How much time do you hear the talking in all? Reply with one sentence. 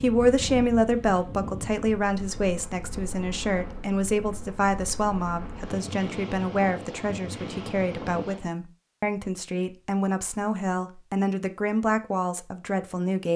You can hear the talking for 13 seconds altogether.